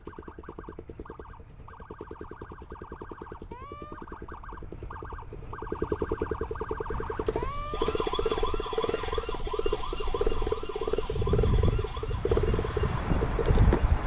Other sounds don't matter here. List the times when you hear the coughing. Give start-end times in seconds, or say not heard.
not heard.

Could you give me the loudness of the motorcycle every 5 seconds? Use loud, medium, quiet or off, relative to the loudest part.
quiet, loud, loud.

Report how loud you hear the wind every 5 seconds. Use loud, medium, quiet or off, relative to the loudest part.
off, quiet, loud.